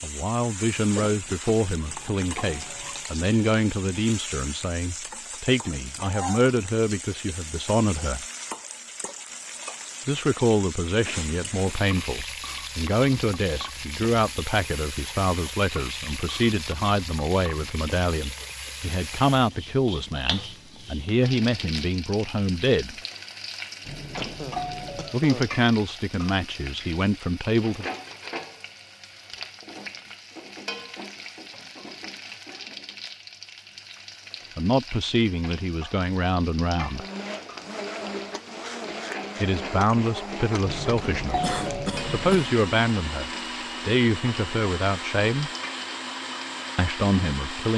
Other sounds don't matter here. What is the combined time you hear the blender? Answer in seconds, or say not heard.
11 s.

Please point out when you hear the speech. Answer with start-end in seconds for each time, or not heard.
0.0-8.2, 10.1-22.9, 25.1-27.9, 34.5-37.0, 39.4-45.5, 46.8-47.7.